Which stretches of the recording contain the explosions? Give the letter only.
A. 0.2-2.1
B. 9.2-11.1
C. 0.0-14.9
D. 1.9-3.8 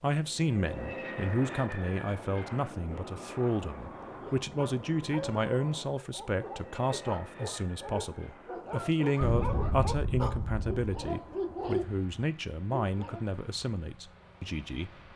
B.